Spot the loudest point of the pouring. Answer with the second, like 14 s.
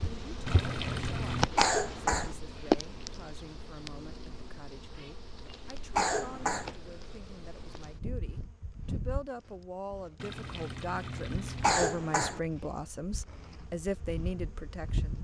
1 s.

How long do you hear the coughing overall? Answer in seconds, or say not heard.
2 s.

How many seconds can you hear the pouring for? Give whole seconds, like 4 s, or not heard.
3 s.